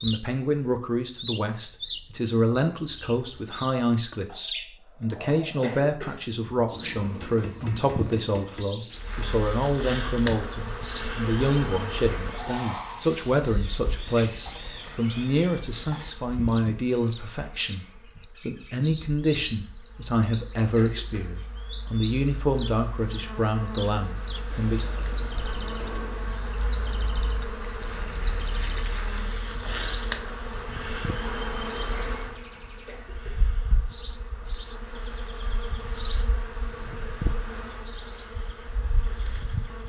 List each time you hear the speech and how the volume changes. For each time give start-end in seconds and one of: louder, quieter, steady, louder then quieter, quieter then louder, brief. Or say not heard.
0.0-24.9 steady.